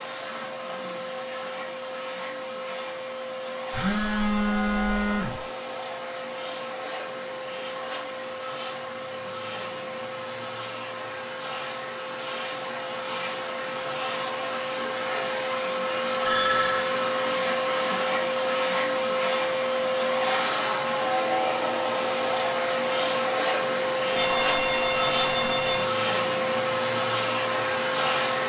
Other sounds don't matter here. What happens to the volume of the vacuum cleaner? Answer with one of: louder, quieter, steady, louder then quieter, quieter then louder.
louder.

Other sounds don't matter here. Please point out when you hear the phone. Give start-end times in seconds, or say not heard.
3.7-5.4, 16.2-16.9, 24.1-25.9.